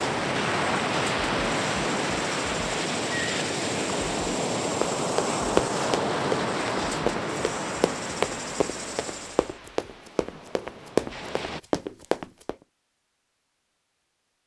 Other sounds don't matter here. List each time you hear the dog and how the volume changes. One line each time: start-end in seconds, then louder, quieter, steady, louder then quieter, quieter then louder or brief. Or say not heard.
not heard.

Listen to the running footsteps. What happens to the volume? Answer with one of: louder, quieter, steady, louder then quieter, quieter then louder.
quieter then louder.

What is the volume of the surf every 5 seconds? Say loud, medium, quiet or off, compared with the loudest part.
loud, loud, quiet.